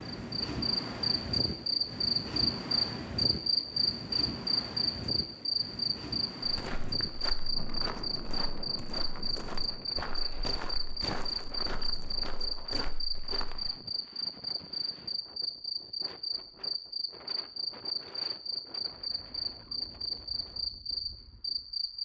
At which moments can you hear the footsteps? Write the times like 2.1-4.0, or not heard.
6.4-13.8.